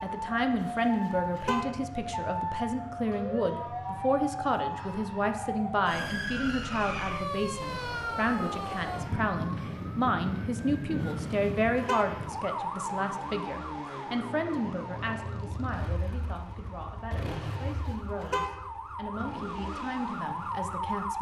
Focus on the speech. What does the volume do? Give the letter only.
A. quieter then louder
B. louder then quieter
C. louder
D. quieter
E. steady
D.